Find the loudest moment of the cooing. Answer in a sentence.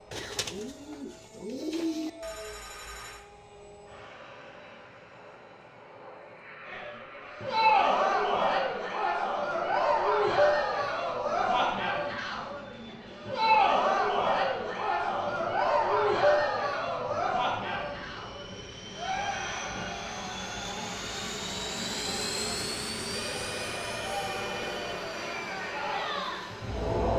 The loudest moment of the cooing is at 2 seconds.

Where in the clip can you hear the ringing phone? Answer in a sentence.
You can hear the ringing phone from 2.2 to 3.2 s and from 23.1 to 25.1 s.